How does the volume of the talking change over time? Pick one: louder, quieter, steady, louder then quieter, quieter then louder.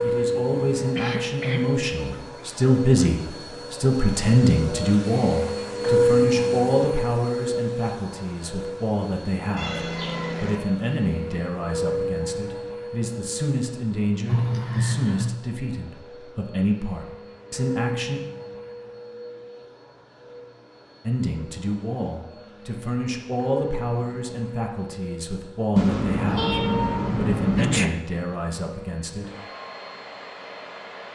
quieter.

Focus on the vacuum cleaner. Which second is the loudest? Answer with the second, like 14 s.
6 s.